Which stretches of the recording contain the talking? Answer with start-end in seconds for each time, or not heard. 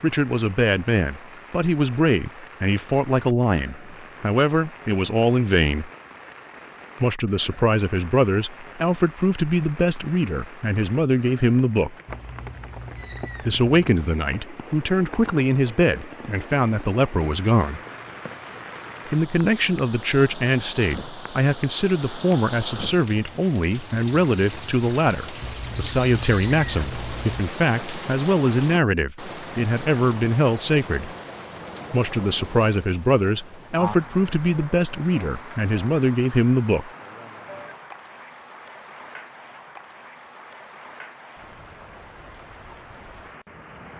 0.0-5.9, 7.0-11.9, 13.4-17.8, 19.1-31.1, 31.9-36.9.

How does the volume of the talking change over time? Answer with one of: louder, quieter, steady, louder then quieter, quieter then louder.
steady.